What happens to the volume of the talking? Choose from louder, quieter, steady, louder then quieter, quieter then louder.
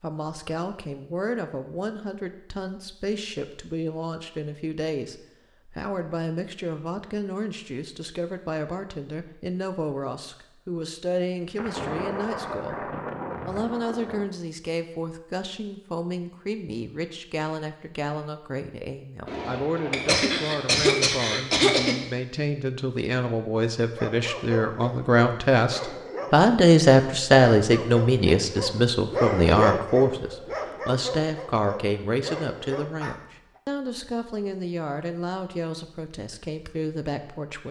louder then quieter.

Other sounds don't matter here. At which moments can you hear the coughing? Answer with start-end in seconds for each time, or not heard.
19.9-21.9.